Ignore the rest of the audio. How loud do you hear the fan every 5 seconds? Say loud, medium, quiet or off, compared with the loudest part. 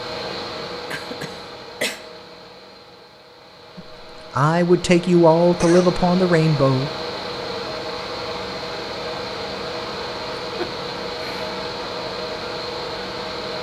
medium, loud, loud.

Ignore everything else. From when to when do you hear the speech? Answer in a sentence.
The speech can be heard from 3.8 to 6.9 s.